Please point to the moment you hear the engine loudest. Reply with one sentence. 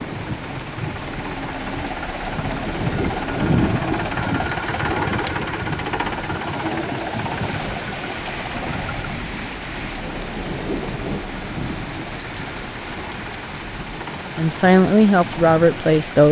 The volume of the engine peaks at 4 seconds.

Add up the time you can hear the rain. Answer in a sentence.
You can hear the rain for 16 seconds altogether.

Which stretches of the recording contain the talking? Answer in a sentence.
The talking can be heard from 14.3 to 16.2 s.